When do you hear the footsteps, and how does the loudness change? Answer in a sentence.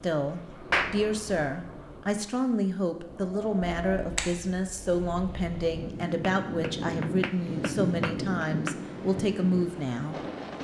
You can't hear the footsteps here.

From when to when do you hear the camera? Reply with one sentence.
The camera can be heard from 3.6 to 4.2 s.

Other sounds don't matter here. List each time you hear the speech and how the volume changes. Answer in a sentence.
The speech can be heard from 0.0 to 10.2 s, at a steady volume.